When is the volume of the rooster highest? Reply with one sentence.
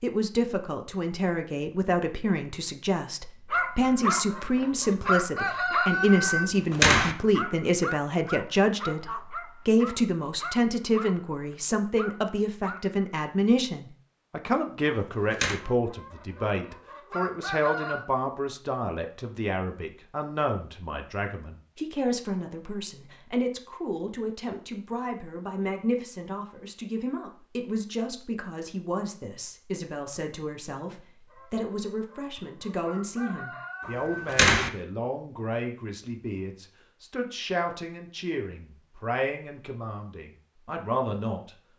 The volume of the rooster peaks at 6 seconds.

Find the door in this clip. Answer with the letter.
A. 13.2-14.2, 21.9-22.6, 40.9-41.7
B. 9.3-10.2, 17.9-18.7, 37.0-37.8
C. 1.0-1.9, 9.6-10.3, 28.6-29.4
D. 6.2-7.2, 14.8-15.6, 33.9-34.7
D.